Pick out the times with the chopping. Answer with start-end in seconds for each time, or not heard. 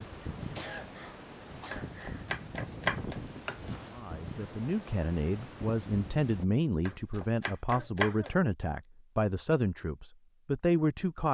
1.7-3.9, 6.8-8.3.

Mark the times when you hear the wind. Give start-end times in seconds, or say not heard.
0.0-6.5.